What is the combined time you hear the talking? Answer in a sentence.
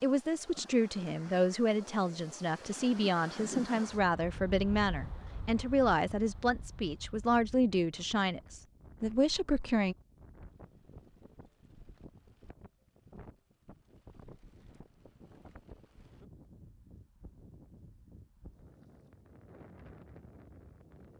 You can hear the talking for 10 seconds altogether.